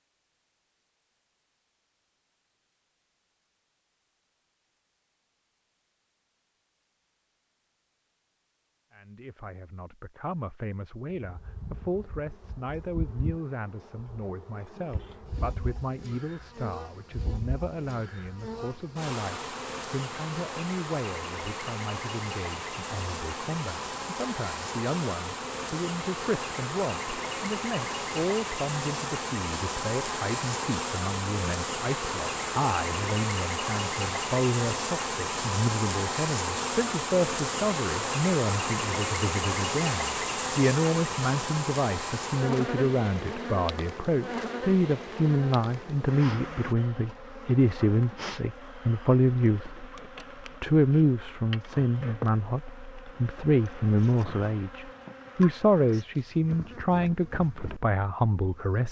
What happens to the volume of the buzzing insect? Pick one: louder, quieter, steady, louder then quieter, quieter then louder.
louder then quieter.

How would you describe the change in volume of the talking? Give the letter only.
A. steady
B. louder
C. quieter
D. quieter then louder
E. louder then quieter
B.